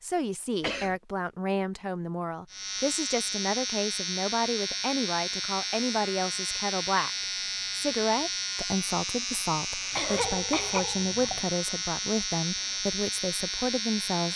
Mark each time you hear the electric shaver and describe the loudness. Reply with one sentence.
You can hear the electric shaver from 2.5 to 14.3 s, at a steady volume.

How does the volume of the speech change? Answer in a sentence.
The volume of the speech stays about the same.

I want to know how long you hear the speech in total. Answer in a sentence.
The speech can be heard for 14 seconds in total.